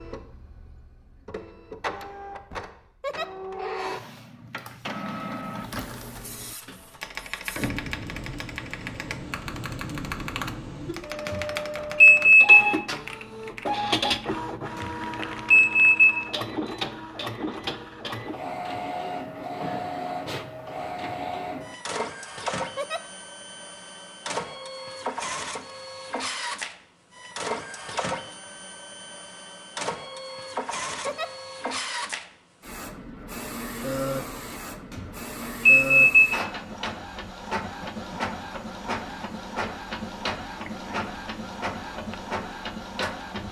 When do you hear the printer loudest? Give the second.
14 s.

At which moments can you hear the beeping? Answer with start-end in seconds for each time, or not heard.
11.2-12.6, 14.8-16.1, 34.9-36.0.